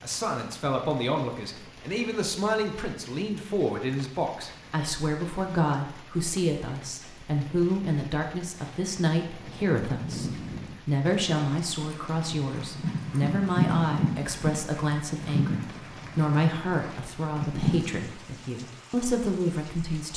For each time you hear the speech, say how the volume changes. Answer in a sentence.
The speech can be heard from 0.0 to 20.1 s, at a steady volume.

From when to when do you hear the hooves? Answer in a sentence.
You can hear the hooves from 9.3 to 17.9 s.